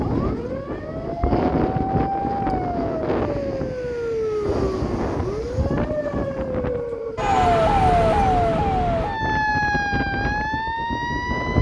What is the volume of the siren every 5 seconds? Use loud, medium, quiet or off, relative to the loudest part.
medium, loud, medium.